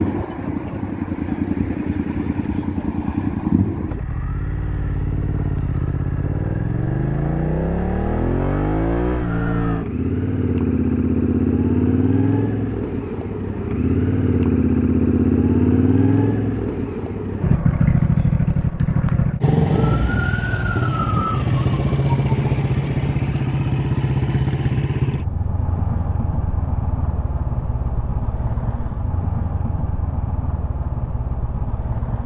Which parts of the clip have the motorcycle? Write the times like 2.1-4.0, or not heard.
0.0-32.2.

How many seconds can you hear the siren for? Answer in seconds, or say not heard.
3 s.